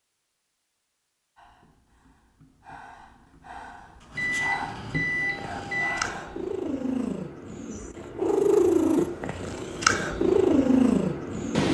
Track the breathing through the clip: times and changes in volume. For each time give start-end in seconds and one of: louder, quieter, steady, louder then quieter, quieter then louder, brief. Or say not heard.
1.4-6.5 louder.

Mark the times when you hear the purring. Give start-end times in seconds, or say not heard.
5.2-11.6.